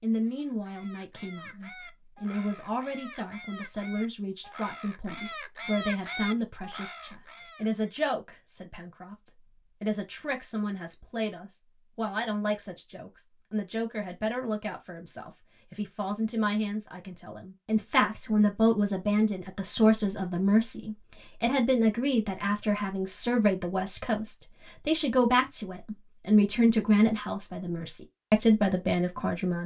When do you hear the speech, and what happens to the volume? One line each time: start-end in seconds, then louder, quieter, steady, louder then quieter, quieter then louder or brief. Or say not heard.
0.0-29.6 louder.